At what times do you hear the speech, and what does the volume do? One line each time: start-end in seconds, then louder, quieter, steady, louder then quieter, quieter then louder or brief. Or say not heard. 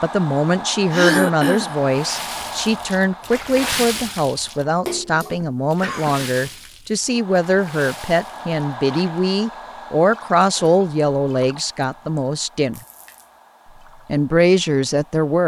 0.0-12.8 steady
14.1-15.4 brief.